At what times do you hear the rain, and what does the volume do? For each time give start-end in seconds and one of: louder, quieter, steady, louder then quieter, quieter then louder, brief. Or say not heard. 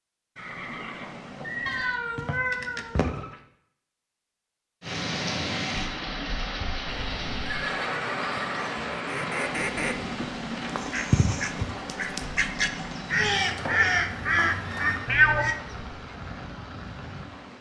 4.8-17.5 quieter.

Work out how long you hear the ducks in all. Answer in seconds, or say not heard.
7 s.